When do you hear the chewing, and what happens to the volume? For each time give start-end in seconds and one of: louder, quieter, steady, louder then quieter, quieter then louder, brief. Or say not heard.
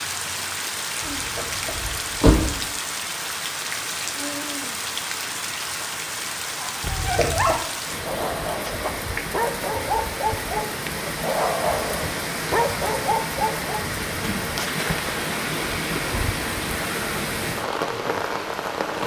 not heard.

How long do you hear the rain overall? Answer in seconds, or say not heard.
19 s.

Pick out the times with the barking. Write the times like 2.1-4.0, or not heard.
6.6-13.8.